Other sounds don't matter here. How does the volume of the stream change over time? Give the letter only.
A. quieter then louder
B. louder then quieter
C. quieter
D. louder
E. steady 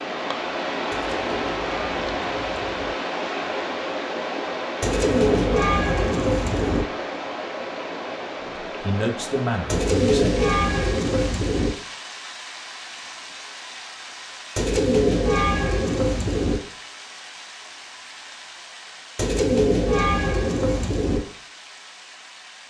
C.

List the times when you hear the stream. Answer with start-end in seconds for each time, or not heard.
0.0-22.6.